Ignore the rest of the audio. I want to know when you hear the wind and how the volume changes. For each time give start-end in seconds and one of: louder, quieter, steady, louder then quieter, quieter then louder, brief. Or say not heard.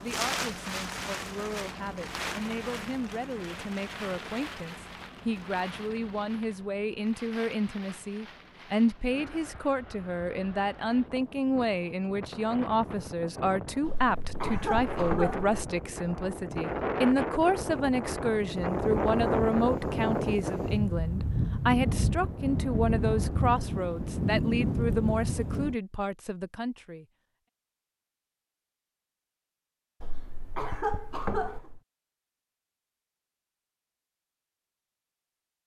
0.0-25.8 quieter then louder.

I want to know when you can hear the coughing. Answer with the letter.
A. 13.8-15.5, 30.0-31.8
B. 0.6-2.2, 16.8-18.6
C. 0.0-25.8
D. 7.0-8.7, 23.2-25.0
A.